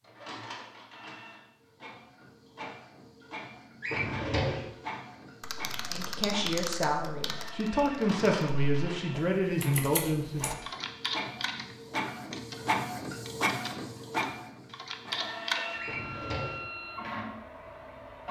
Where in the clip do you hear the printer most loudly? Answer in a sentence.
The loudest moment of the printer is at 13 seconds.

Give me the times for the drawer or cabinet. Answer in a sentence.
You can hear the drawer or cabinet from 3.8 to 4.7 s and from 15.8 to 16.6 s.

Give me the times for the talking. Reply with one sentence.
You can hear the talking from 5.9 to 10.5 s.